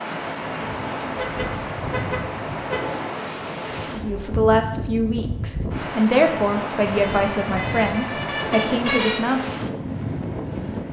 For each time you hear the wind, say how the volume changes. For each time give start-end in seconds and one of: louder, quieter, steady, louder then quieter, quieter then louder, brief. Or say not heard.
0.0-10.8 steady.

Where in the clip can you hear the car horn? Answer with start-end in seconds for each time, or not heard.
1.1-2.8, 6.8-9.2.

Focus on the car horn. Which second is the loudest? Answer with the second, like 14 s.
9 s.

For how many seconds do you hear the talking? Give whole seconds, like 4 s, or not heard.
6 s.